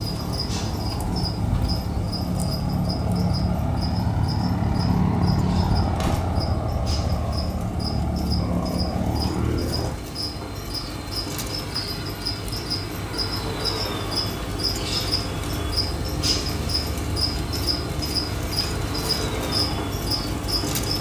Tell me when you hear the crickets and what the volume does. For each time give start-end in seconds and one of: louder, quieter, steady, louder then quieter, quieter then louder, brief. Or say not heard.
0.0-20.9 louder.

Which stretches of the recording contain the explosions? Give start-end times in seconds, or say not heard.
6.0-6.4.